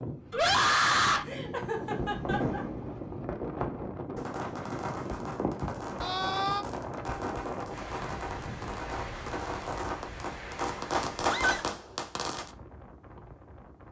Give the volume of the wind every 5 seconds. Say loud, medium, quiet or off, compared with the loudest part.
loud, loud, medium.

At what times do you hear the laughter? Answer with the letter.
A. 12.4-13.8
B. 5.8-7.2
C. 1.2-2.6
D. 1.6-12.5
C.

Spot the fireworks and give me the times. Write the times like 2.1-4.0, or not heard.
1.6-12.5.